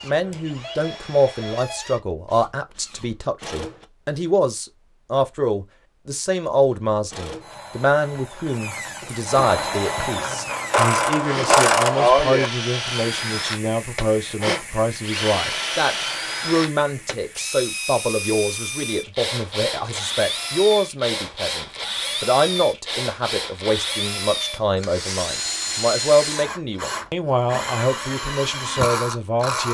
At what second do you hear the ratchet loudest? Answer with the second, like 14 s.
12 s.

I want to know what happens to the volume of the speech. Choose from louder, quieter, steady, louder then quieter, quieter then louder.
steady.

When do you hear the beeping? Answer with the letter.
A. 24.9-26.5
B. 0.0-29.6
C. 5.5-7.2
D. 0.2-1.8
D.